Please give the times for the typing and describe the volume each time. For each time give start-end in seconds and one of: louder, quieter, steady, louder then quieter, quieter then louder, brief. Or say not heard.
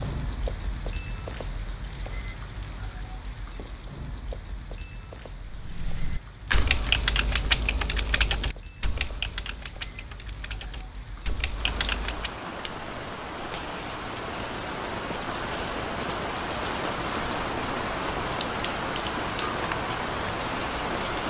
5.5-12.3 quieter then louder.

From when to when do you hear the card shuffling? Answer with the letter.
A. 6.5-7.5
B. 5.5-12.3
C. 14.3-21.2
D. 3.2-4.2
A.